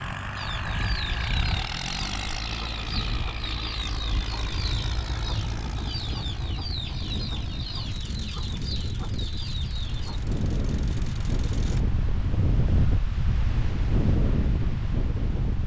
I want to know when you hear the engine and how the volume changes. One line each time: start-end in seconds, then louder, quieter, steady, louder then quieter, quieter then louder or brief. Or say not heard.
0.0-11.8 quieter.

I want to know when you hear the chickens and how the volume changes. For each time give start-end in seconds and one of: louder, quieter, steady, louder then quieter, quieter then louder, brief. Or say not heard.
0.3-10.2 steady.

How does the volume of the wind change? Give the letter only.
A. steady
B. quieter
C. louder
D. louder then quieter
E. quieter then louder
C.